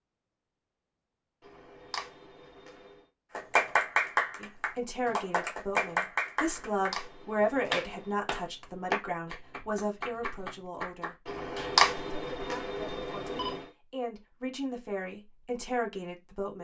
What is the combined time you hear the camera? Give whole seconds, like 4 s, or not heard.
6 s.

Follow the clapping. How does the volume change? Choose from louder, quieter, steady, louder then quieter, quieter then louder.
quieter.